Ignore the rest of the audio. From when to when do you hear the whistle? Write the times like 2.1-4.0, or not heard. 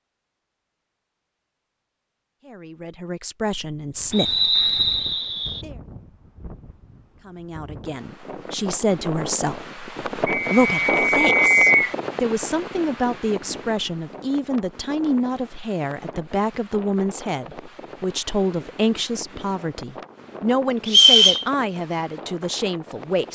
4.1-5.7, 10.2-11.9, 20.9-21.4.